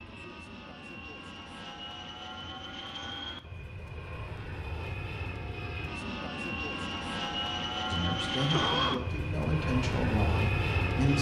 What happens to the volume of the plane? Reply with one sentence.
The volume of the plane goes up.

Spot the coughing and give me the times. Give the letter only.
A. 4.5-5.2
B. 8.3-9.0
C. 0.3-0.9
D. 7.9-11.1
B.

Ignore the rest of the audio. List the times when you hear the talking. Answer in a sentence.
You can hear the talking from 7.9 to 11.1 s.